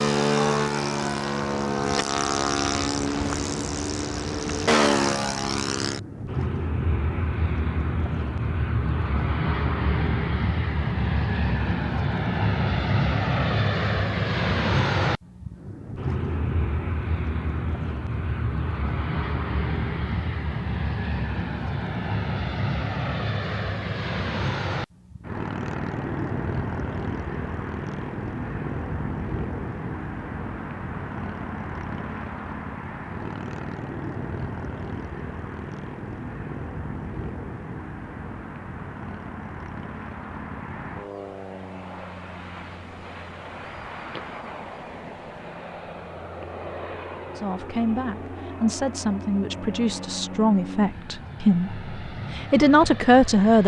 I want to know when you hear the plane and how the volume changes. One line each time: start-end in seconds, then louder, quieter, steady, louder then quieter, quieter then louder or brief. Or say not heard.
0.0-53.6 quieter.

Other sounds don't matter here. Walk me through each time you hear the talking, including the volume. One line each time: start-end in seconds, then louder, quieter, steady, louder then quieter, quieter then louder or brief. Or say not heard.
47.4-53.6 louder.